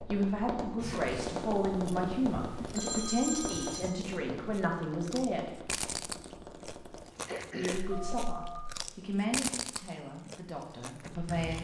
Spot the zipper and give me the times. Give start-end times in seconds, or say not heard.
not heard.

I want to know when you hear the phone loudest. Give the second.
3 s.